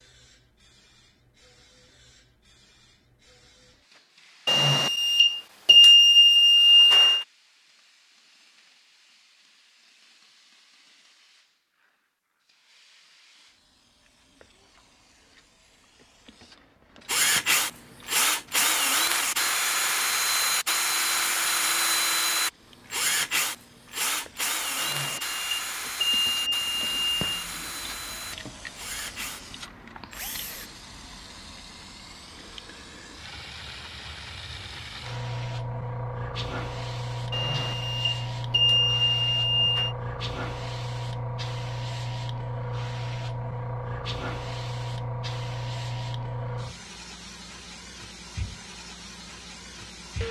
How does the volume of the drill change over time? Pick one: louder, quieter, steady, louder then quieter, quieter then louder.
quieter.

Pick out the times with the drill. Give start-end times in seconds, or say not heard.
17.1-30.7.